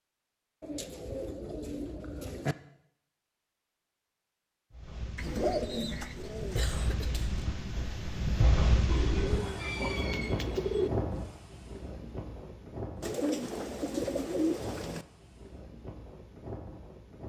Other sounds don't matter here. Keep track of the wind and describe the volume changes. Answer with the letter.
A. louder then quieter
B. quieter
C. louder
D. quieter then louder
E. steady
A.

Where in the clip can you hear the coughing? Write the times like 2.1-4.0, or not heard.
6.5-7.4.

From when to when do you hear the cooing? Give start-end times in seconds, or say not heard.
0.6-2.5, 5.2-6.7, 8.8-10.9, 13.0-15.1.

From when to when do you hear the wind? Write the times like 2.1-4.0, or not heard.
4.7-17.2.